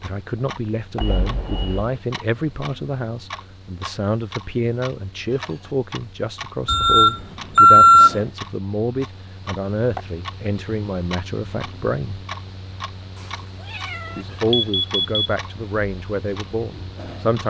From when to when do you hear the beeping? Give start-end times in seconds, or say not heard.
1.0-1.9, 6.7-8.2, 14.5-15.3.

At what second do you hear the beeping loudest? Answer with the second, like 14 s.
8 s.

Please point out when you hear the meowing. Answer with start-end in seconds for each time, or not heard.
13.2-14.4.